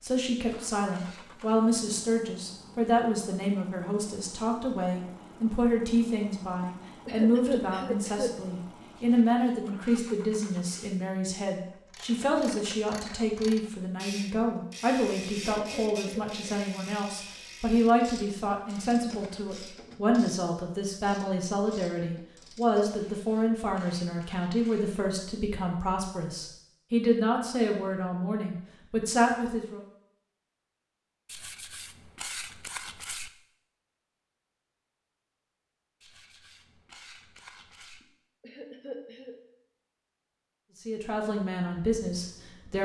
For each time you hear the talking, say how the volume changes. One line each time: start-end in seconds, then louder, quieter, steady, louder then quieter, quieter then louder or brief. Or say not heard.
0.0-29.8 steady
40.9-42.8 brief.